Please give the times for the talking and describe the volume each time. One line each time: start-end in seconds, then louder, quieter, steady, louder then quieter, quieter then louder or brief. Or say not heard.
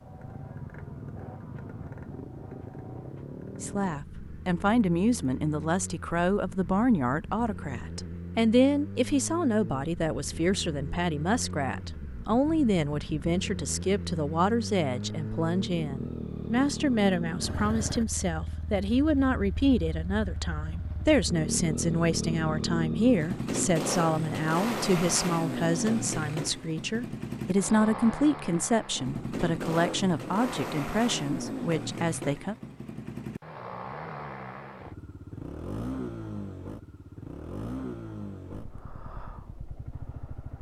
3.6-32.5 steady.